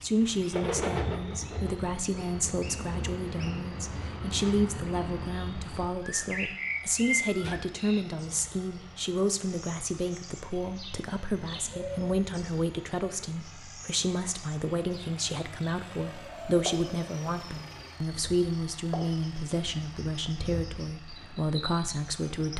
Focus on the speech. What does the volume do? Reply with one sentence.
The loudness of the speech stays about the same.